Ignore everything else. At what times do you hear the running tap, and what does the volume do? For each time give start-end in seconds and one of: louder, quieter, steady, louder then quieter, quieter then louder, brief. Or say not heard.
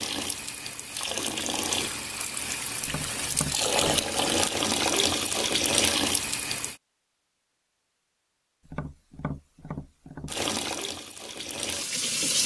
0.0-6.8 louder
10.2-12.4 brief.